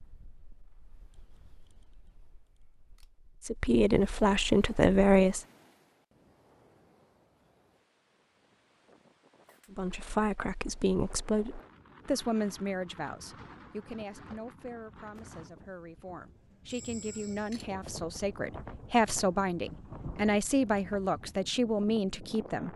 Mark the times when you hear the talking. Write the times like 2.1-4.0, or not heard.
3.5-5.4, 9.7-22.7.